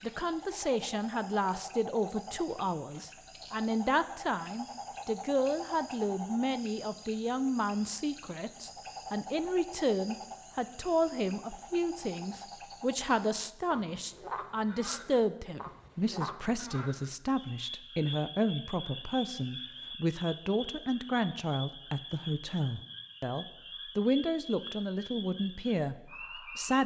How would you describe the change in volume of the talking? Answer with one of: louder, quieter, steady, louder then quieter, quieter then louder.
steady.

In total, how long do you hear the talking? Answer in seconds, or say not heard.
27 s.